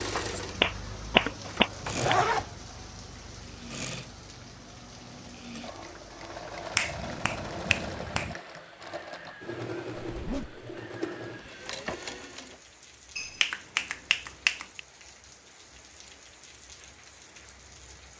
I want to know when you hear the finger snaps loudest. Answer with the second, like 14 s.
1 s.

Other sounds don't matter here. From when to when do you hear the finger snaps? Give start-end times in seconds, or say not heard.
0.1-2.1, 6.8-8.3, 13.2-14.8.